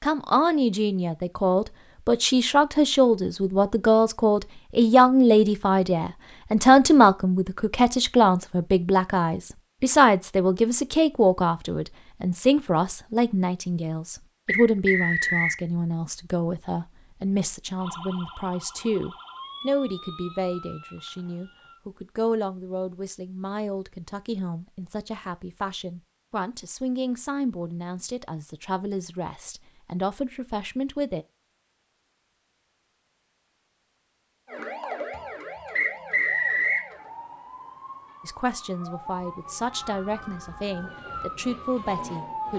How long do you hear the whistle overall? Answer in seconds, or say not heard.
2 s.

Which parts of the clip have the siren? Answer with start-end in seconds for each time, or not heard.
17.8-21.8, 34.5-42.5.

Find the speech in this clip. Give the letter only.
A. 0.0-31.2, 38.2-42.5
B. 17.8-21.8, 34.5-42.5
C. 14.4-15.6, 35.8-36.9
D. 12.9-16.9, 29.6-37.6
A.